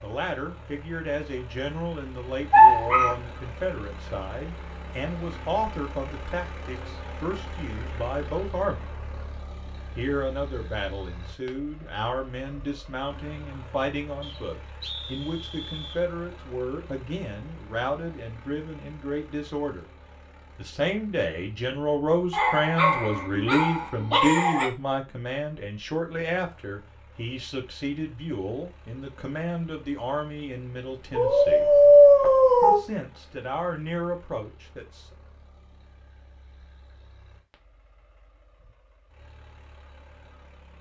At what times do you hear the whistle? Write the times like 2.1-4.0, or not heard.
14.2-16.0.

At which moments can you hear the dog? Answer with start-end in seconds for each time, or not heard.
2.5-3.1, 22.3-24.7, 31.1-32.8.